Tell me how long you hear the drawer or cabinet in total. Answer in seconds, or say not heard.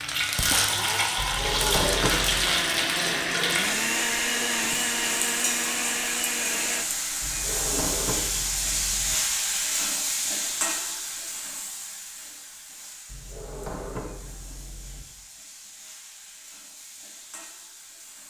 5 s.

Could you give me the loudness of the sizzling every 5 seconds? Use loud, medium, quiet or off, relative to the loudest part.
loud, loud, medium, quiet.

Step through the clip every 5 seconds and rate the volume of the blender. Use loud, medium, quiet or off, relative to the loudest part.
loud, loud, off, off.